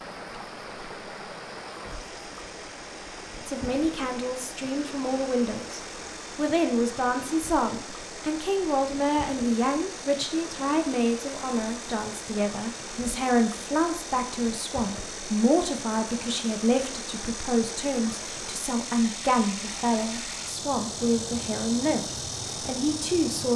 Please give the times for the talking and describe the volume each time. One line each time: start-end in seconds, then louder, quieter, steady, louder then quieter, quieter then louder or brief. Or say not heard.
3.5-23.5 steady.